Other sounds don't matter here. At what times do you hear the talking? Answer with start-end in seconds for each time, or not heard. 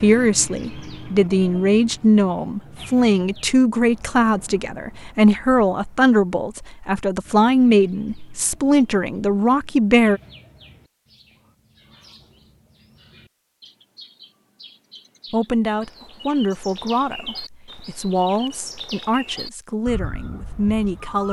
0.0-10.2, 15.3-21.2.